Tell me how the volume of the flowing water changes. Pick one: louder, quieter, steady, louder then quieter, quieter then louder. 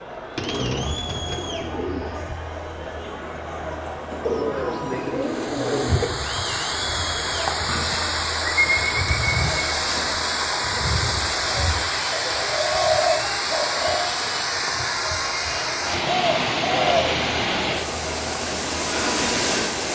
steady.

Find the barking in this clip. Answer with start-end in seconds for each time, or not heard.
not heard.